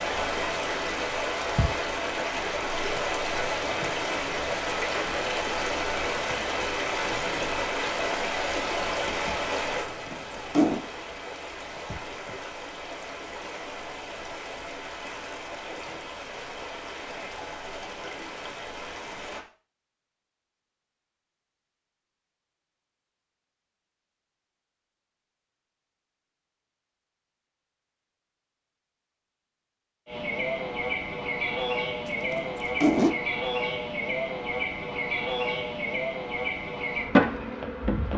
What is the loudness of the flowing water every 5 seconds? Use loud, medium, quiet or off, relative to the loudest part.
loud, loud, medium, medium, off, off, off, off.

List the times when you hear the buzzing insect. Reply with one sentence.
The buzzing insect can be heard from 30.1 to 38.1 s.